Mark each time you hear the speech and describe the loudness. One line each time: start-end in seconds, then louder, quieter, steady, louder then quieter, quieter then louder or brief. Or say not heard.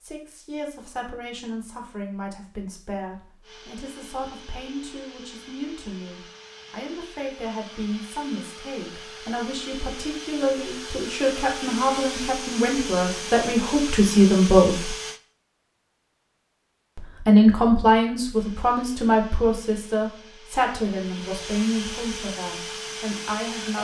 0.0-14.9 louder
16.9-23.7 quieter.